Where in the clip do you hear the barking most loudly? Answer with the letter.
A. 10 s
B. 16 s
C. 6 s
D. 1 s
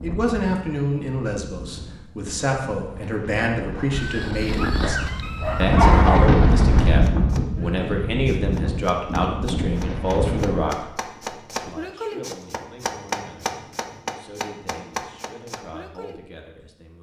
C.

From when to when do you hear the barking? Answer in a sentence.
The barking can be heard from 3.9 to 6.3 s.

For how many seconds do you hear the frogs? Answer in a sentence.
The frogs can't be heard in this clip.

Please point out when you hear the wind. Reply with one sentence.
You can hear the wind from 0.0 to 10.8 s.